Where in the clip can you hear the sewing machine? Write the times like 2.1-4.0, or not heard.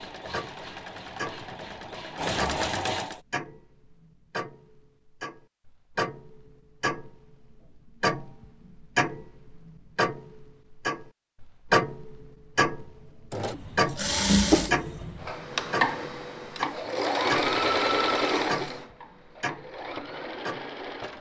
0.0-3.2, 13.3-21.1.